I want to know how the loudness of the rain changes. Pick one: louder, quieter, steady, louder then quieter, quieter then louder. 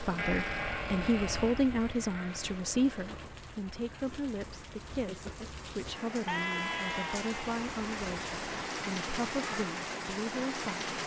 louder.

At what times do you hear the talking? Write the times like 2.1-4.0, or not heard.
0.0-10.9.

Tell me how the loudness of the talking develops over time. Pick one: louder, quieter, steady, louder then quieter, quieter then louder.
quieter.